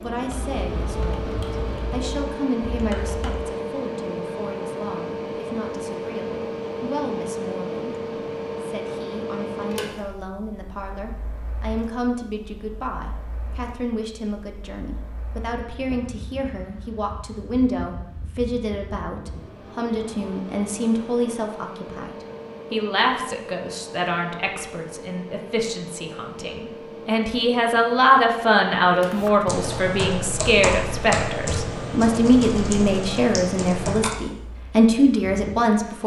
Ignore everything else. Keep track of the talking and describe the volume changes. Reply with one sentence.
The volume of the talking goes up.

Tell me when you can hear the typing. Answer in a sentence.
The typing can be heard from 0.1 to 3.5 s and from 29.1 to 34.2 s.